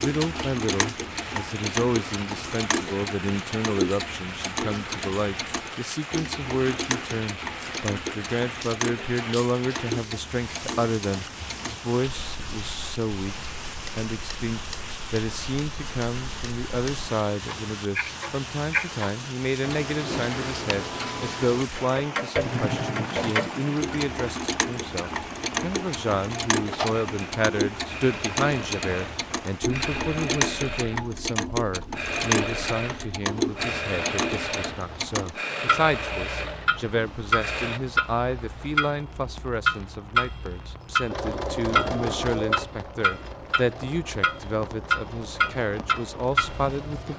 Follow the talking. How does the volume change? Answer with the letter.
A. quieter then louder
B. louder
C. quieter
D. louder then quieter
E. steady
E.